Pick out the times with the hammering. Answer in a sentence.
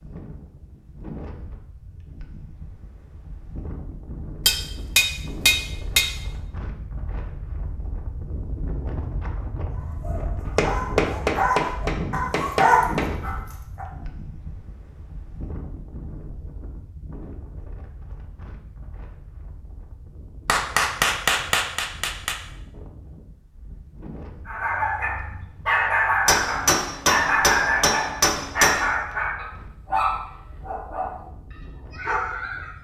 You can hear the hammering from 4.5 to 6.0 s, from 10.4 to 13.1 s, from 20.4 to 22.4 s and from 26.2 to 28.9 s.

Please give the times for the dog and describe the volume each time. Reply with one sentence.
The dog can be heard from 9.7 to 13.8 s, getting louder then quieter; and from 24.4 to 32.7 s, getting quieter.